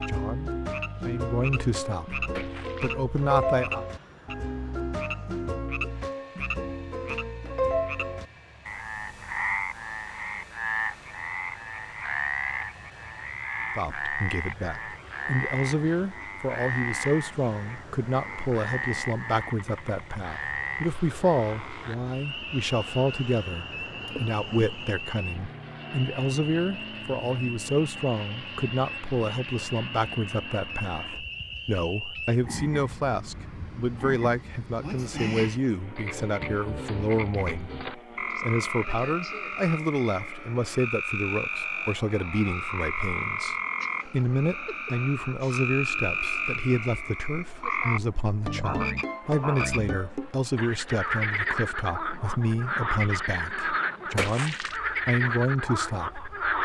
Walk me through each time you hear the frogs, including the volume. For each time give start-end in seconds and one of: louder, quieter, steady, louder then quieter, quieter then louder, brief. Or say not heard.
0.0-56.6 quieter then louder.